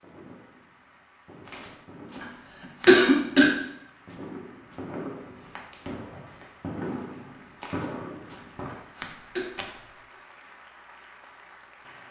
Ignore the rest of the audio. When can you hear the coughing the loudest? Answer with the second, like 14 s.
3 s.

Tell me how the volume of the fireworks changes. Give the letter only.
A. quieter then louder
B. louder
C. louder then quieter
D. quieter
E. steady
B.